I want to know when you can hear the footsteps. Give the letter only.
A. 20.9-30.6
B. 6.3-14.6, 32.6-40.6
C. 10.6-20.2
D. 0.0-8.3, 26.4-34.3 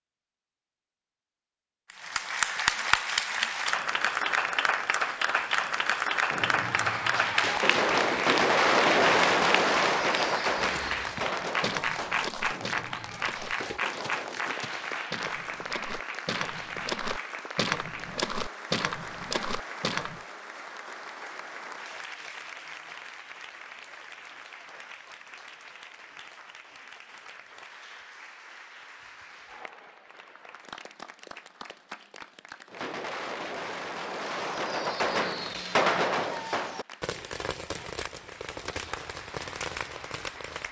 C.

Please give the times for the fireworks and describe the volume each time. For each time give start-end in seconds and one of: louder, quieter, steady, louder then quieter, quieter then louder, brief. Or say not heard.
6.3-14.6 louder then quieter
32.6-40.6 louder then quieter.